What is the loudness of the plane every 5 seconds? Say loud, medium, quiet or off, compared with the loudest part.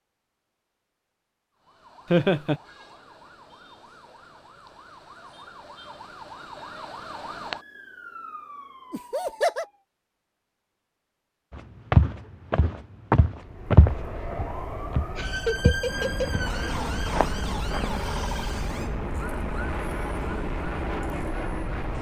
off, off, medium, loud, loud.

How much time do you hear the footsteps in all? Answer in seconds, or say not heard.
6 s.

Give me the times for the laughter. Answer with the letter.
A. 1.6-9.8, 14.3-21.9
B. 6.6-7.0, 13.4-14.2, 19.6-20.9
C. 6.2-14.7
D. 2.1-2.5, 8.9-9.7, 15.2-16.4
D.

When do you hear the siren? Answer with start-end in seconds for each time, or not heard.
1.6-9.8, 14.3-21.9.